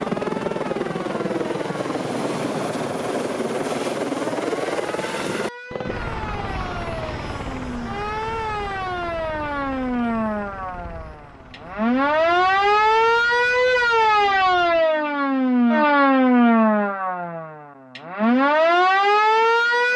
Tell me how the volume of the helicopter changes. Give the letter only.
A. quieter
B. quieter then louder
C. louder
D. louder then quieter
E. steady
A.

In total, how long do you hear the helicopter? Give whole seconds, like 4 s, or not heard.
15 s.